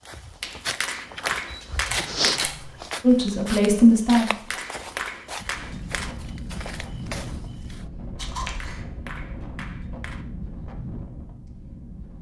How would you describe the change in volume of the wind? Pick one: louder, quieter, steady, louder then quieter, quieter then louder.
steady.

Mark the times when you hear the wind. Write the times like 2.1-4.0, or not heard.
5.5-12.1.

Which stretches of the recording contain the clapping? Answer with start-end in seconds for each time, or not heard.
0.4-2.5, 4.3-6.2, 8.4-10.2.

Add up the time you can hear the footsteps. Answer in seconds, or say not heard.
8 s.